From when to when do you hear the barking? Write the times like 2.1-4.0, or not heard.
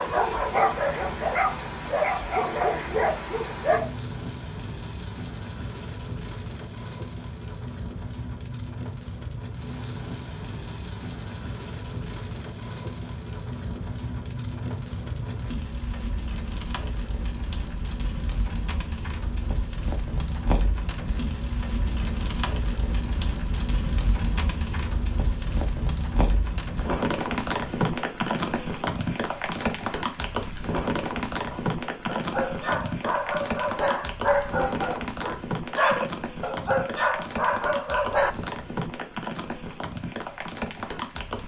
0.0-3.9, 31.5-38.4.